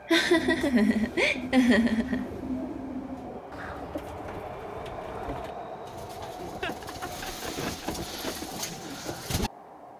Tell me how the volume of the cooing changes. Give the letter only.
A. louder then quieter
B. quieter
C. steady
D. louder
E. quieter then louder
E.